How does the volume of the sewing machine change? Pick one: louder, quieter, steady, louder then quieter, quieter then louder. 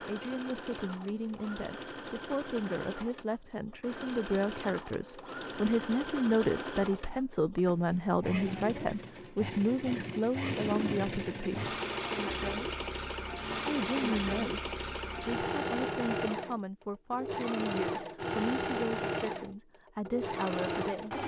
louder.